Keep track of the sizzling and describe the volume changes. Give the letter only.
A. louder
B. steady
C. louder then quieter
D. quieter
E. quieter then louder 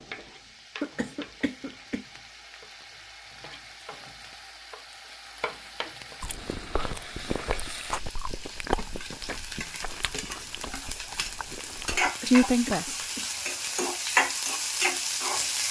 A.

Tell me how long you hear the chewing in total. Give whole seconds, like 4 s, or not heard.
6 s.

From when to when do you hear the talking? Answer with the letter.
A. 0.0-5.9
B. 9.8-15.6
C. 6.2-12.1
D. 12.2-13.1
D.